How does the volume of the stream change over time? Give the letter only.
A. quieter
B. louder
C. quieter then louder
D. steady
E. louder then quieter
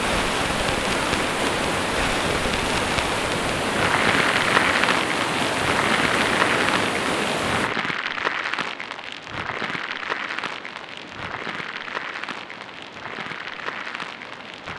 A.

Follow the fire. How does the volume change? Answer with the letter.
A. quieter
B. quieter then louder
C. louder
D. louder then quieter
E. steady
D.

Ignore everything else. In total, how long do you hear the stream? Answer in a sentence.
You can hear the stream for 15 seconds altogether.